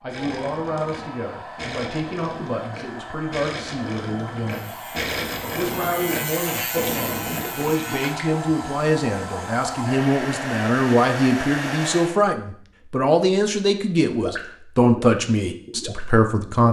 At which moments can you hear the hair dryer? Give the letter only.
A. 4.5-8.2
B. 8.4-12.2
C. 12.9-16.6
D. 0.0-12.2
D.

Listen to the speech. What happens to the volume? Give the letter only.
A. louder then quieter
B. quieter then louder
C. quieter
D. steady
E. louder
E.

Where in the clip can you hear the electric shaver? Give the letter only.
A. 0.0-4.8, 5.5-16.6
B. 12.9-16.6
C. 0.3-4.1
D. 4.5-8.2
D.